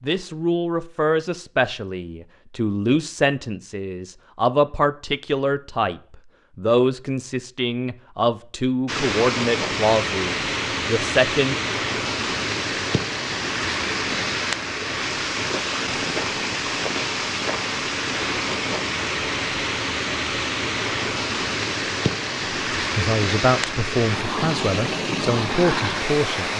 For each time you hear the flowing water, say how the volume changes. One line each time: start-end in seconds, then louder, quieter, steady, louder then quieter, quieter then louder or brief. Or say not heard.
8.8-26.5 steady.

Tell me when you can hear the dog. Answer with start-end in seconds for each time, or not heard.
not heard.